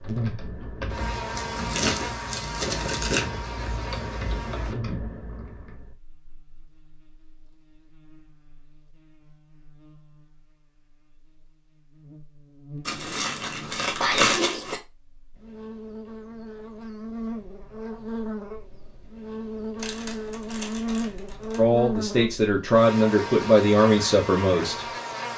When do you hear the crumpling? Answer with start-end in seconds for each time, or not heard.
1.4-3.2, 12.8-14.8, 19.8-21.6.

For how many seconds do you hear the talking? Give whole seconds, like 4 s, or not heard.
3 s.